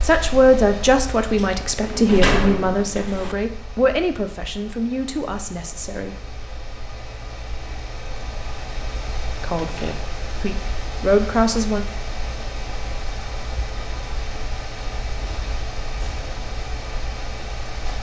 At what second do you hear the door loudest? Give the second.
2 s.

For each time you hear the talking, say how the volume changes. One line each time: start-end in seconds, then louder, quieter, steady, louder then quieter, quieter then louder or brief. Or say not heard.
0.0-6.2 quieter
9.4-11.8 brief.